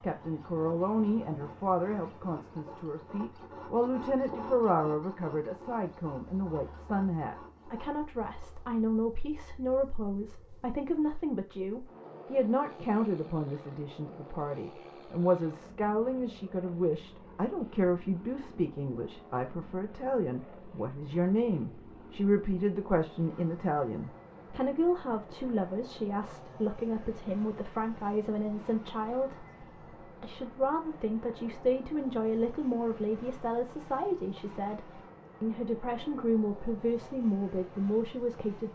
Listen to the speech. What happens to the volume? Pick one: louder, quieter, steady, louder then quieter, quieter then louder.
steady.